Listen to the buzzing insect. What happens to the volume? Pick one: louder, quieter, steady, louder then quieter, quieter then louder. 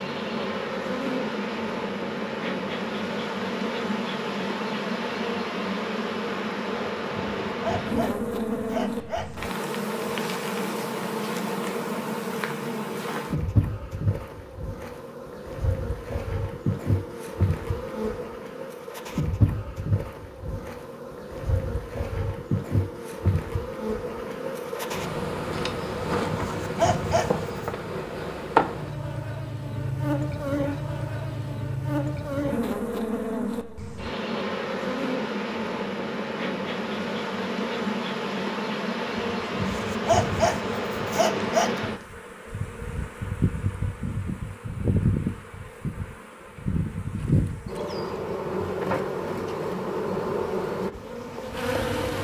steady.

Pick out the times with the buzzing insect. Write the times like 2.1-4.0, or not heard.
0.0-52.1.